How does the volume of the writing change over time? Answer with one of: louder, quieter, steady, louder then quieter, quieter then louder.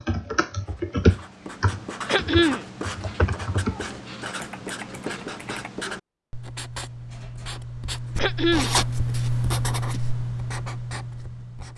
louder.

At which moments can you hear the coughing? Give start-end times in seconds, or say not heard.
2.0-2.6, 8.2-8.8.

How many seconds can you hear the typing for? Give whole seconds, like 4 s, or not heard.
6 s.